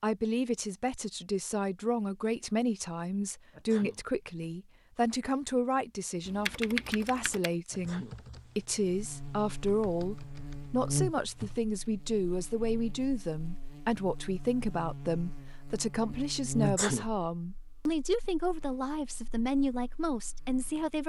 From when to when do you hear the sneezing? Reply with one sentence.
You can hear the sneezing from 3.5 to 4.0 s, from 7.7 to 8.2 s and from 16.6 to 17.1 s.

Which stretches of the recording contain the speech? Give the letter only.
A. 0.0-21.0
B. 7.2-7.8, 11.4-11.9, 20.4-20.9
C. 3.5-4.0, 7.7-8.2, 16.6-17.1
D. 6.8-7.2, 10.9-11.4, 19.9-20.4
A.